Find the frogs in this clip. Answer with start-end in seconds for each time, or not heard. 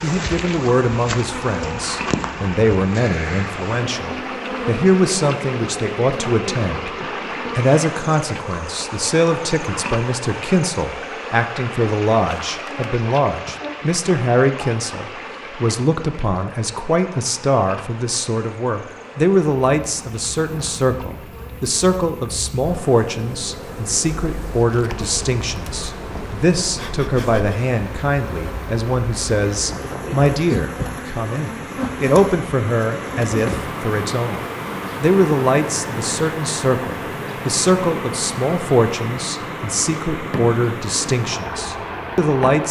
not heard.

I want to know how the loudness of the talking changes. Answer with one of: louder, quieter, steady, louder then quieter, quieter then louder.
steady.